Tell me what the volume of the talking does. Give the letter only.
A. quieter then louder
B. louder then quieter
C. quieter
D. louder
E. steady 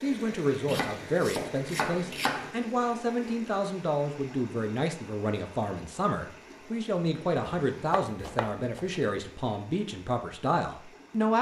E.